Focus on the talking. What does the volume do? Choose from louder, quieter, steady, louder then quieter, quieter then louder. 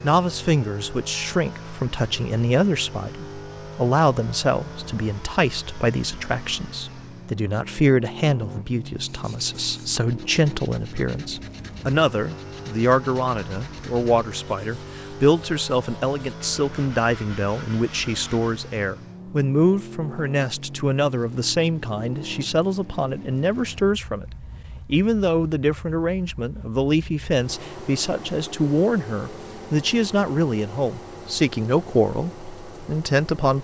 steady.